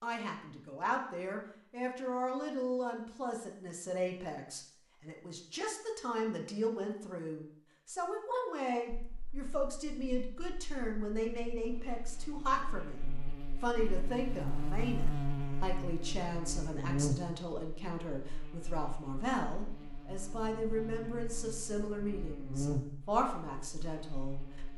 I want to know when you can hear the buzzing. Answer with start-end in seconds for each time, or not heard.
8.9-24.7.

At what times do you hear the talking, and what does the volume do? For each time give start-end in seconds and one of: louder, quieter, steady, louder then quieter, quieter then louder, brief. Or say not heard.
0.0-24.7 steady.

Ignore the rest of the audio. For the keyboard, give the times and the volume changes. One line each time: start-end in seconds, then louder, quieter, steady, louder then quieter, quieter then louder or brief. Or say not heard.
not heard.